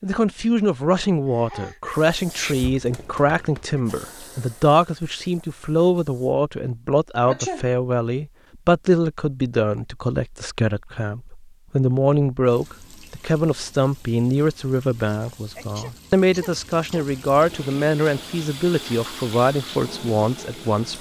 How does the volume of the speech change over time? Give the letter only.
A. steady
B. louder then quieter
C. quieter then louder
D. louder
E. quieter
A.